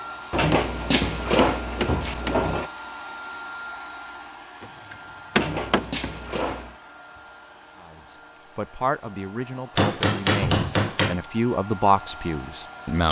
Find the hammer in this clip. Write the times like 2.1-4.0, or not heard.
0.5-2.4, 4.6-6.1, 9.8-11.2.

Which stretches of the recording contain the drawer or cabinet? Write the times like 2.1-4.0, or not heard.
0.3-2.7, 5.3-6.8, 10.4-10.8.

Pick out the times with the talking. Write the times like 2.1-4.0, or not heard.
7.8-13.0.